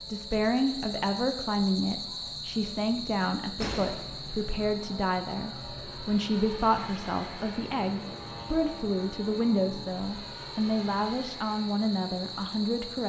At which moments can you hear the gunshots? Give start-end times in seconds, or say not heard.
3.6-4.5.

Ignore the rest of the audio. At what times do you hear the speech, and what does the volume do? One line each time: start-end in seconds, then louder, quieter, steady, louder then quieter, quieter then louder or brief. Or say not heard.
0.0-13.0 steady.